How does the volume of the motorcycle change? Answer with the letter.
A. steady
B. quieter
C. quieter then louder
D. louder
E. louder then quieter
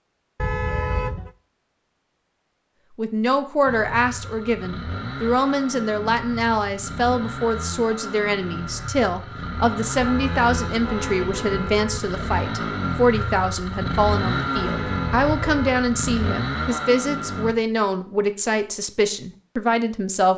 D.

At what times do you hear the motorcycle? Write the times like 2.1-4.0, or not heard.
3.6-17.6.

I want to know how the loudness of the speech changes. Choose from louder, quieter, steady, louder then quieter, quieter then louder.
steady.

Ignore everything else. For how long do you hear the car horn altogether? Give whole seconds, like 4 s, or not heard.
4 s.